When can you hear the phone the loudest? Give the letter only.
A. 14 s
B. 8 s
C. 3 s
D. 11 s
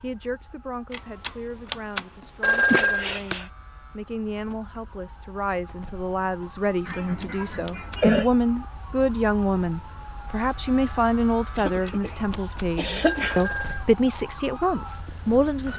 C.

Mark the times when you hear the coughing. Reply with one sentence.
The coughing can be heard from 2.7 to 3.5 s, from 6.8 to 8.3 s, from 11.6 to 12.2 s and from 12.8 to 13.4 s.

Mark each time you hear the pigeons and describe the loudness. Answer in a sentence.
The pigeons can't be heard in this clip.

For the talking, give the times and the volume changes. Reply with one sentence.
You can hear the talking from 0.0 to 15.7 s, getting louder.